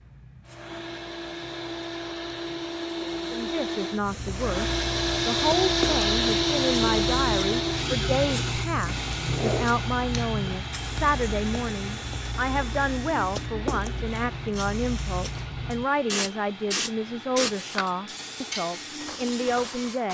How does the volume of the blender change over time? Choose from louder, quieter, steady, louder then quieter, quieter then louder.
louder then quieter.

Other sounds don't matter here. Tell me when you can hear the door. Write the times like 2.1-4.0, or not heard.
not heard.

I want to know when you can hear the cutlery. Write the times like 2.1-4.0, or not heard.
17.7-20.1.